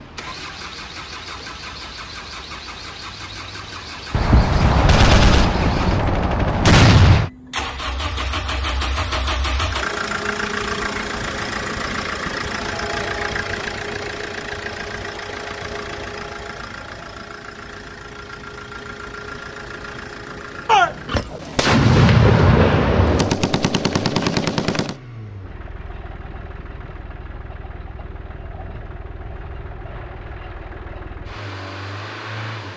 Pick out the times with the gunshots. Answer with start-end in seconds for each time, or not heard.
4.1-7.3, 20.6-24.9.